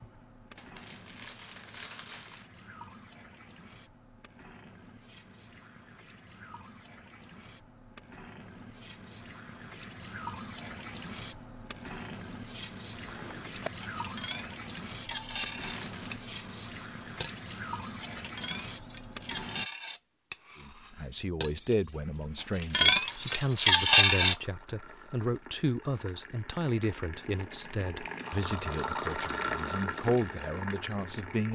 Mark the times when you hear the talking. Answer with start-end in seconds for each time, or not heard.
20.6-31.5.